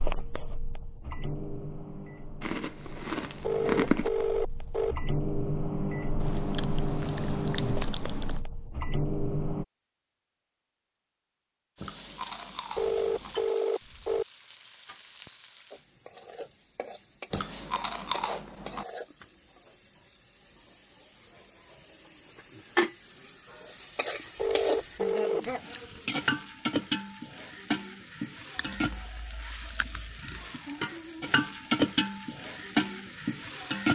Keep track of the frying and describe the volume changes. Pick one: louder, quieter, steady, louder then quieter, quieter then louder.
louder.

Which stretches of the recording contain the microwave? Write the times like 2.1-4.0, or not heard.
0.0-9.7.